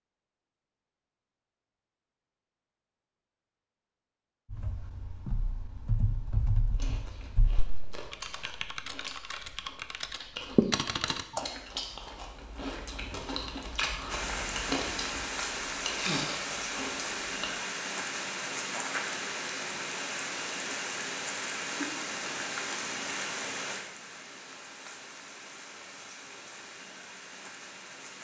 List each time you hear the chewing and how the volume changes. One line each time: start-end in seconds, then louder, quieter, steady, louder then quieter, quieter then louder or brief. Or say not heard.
6.7-17.5 louder.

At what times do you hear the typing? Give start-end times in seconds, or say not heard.
4.5-11.4.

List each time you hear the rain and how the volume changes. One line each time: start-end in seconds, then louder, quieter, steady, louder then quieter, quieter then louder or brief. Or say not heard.
14.1-28.2 quieter.